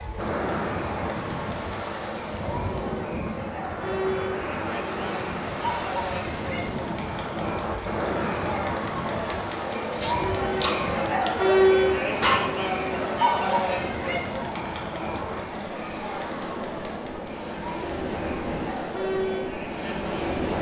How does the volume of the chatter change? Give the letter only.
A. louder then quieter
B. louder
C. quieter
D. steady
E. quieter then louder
A.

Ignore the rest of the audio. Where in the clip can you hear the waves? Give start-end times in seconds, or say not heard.
0.0-20.5.